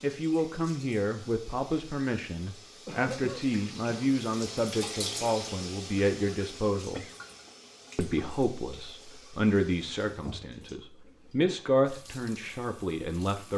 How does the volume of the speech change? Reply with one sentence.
The volume of the speech stays about the same.